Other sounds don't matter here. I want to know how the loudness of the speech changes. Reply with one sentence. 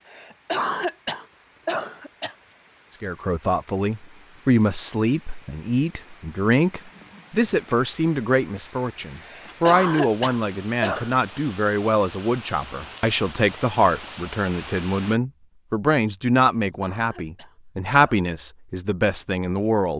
The volume of the speech stays about the same.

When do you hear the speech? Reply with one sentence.
The speech can be heard from 3.0 to 19.9 s.